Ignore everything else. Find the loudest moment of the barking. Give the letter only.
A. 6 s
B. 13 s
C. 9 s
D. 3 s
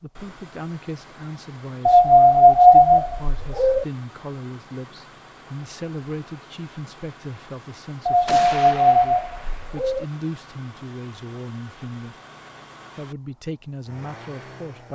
D.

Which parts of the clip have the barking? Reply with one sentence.
The barking can be heard from 1.9 to 3.9 s and from 8.1 to 10.1 s.